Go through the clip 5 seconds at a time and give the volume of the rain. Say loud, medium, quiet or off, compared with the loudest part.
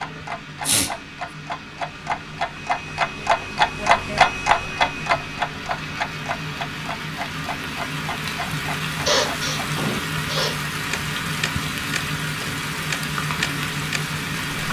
medium, loud, loud.